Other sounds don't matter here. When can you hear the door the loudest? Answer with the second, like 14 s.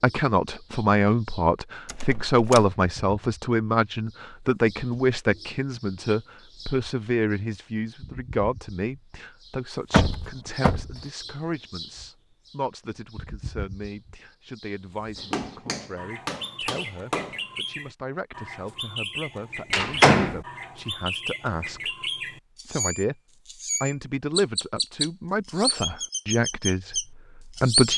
20 s.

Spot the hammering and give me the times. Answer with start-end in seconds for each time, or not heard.
15.2-17.4.